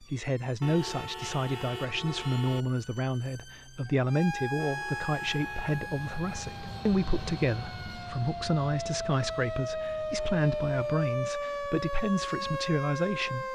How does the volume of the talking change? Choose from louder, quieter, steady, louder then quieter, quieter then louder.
steady.